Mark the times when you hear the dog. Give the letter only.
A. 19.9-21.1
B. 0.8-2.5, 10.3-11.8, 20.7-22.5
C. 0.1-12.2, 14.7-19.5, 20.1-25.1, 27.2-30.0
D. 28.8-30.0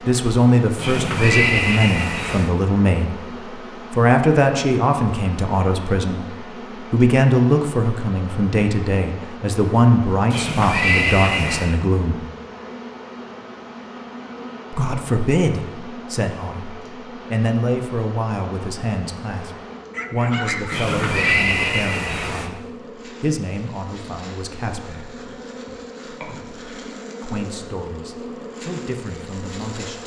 A.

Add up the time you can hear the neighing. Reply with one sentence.
You can hear the neighing for 5 seconds altogether.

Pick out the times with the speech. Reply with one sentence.
The speech can be heard from 0.1 to 12.2 s, from 14.7 to 19.5 s, from 20.1 to 25.1 s and from 27.2 to 30.0 s.